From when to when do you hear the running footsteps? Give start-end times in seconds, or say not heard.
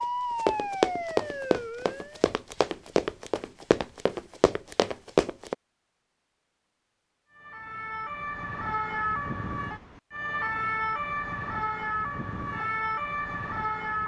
0.3-5.5.